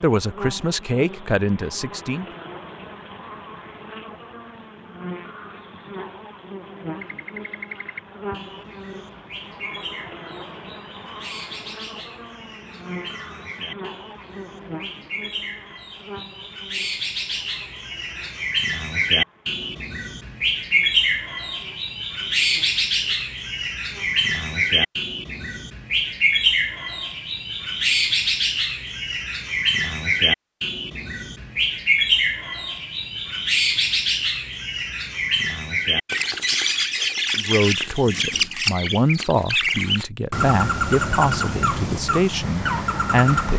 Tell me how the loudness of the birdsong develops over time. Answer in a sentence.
The volume of the birdsong goes up.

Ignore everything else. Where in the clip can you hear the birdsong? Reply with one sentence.
You can hear the birdsong from 7.0 to 43.5 s.